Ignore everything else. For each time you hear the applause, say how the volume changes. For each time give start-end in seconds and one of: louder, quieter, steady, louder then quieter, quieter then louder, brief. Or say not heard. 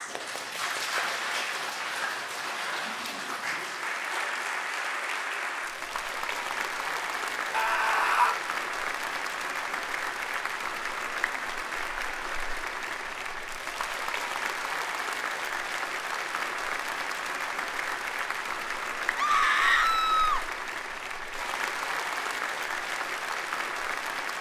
0.0-24.3 steady.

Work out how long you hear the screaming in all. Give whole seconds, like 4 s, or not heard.
2 s.